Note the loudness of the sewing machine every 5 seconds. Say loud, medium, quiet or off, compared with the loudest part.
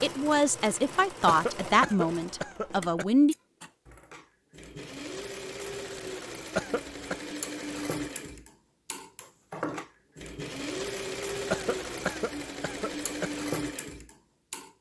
medium, loud, loud.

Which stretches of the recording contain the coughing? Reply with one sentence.
The coughing can be heard from 1.2 to 3.0 s, from 6.5 to 7.2 s and from 11.5 to 13.3 s.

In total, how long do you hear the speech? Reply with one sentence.
You can hear the speech for 3 seconds altogether.